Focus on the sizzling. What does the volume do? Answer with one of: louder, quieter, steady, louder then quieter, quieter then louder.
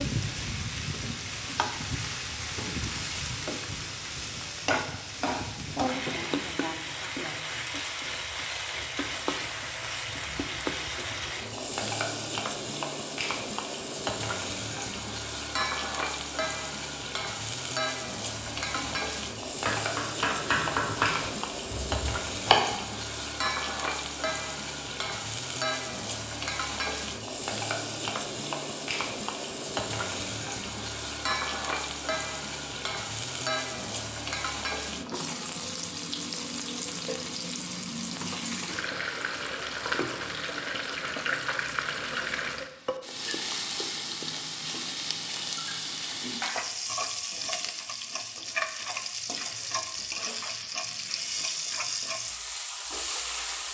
steady.